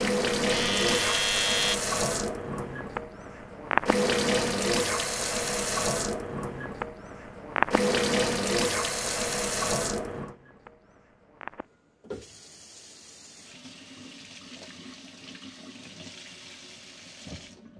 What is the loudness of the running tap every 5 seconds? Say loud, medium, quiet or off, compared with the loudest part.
loud, loud, quiet, quiet.